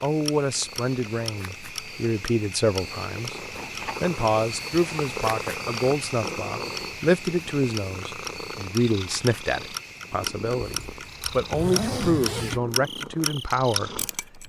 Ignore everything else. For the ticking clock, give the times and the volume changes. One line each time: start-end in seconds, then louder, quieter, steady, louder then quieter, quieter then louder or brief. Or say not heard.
0.0-14.4 louder.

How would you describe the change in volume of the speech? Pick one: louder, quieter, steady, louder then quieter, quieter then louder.
steady.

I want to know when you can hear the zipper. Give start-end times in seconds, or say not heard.
10.6-12.6.